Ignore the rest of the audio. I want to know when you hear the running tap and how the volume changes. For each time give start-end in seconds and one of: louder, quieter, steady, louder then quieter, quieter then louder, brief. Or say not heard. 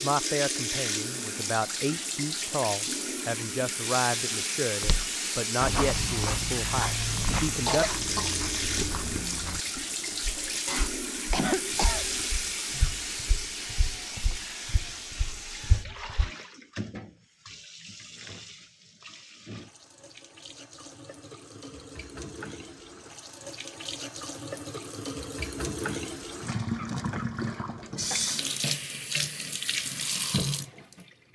0.0-31.3 quieter then louder.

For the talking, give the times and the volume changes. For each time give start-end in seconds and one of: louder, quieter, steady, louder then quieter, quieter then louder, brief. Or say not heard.
0.0-8.1 steady.